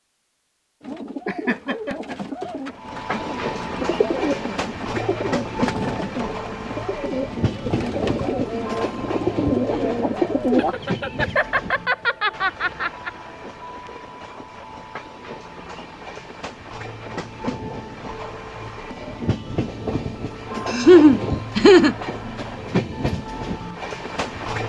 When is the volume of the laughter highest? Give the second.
21 s.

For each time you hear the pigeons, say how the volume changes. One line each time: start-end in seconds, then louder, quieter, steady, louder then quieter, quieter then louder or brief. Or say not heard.
0.8-10.8 louder.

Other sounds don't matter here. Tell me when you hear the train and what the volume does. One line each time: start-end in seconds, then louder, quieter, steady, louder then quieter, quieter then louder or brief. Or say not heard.
2.7-24.6 quieter then louder.